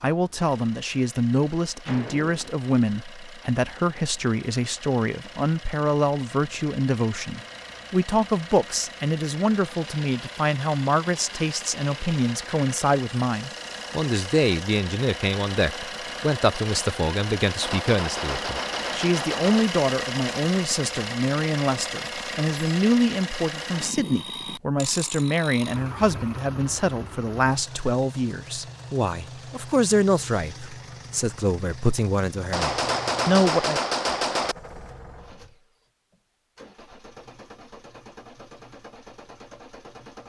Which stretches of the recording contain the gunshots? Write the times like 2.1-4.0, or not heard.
1.9-2.5, 17.6-19.6, 32.5-34.5.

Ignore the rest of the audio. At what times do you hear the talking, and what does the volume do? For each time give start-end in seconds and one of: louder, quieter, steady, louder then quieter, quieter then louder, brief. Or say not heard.
0.0-33.8 steady.